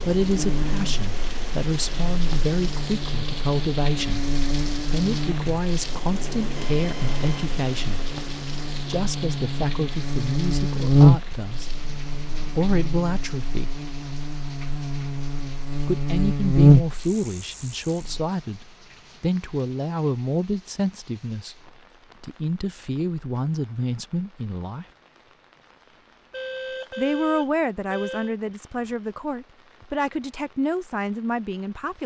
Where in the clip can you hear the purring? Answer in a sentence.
The purring can't be heard in this clip.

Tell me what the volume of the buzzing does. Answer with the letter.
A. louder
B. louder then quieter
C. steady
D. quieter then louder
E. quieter
A.